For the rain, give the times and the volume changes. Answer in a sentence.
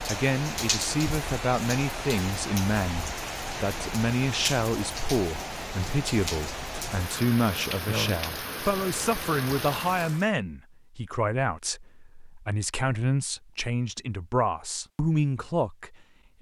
The rain can be heard from 0.0 to 10.3 s, at a steady volume.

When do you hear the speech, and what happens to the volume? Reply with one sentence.
The speech can be heard from 0.1 to 15.9 s, at a steady volume.